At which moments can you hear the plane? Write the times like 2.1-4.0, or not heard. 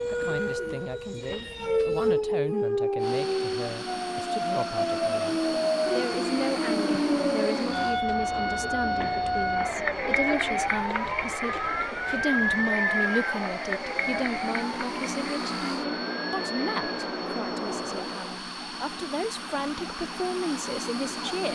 3.0-21.5.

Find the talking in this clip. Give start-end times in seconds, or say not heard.
0.1-21.5.